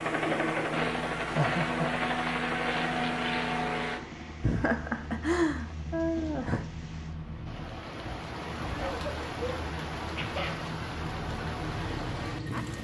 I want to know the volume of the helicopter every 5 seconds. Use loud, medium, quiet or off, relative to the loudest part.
loud, quiet, medium.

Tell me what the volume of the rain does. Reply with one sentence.
The loudness of the rain goes up.